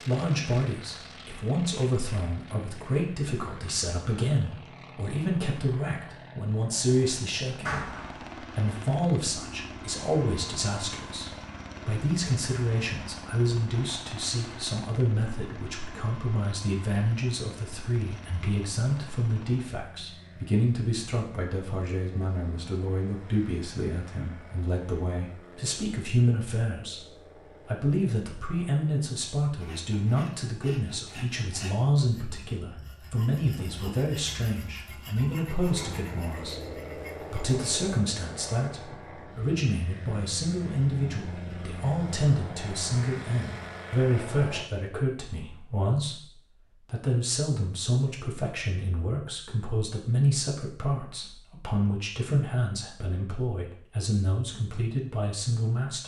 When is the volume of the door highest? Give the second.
8 s.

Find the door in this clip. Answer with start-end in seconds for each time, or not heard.
7.6-8.2, 33.5-34.0.